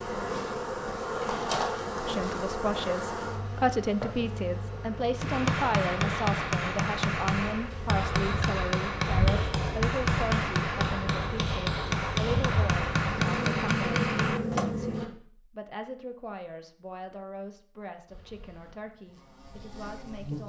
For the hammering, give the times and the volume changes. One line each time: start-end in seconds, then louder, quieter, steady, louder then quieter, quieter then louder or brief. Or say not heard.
5.2-14.8 steady.